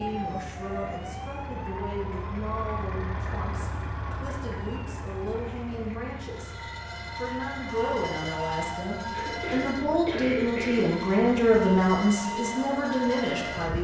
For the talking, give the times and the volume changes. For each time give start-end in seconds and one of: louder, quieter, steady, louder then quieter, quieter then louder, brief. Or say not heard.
0.0-13.7 louder.